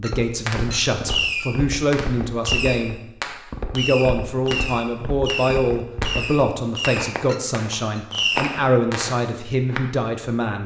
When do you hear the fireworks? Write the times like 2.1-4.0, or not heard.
0.5-9.2.